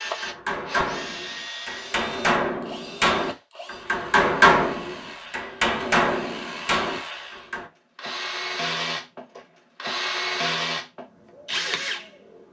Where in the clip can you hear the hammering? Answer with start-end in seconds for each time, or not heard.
0.0-7.7.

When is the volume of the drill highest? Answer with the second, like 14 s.
10 s.